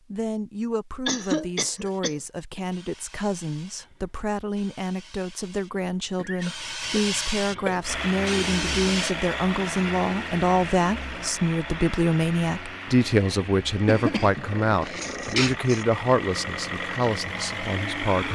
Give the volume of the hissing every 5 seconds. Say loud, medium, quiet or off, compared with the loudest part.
quiet, loud, off, off.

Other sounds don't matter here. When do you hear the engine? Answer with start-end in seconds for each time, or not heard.
7.8-18.2.